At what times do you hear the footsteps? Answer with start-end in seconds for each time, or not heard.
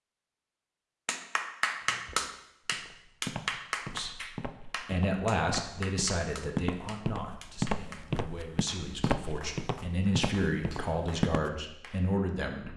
1.8-11.4.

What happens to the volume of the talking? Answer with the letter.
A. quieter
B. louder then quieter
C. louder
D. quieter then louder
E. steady
D.